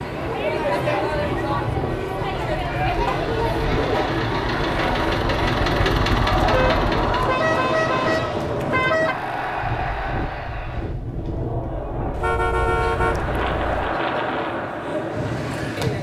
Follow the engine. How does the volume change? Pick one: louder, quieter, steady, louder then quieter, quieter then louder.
louder then quieter.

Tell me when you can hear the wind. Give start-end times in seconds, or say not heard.
0.0-15.9.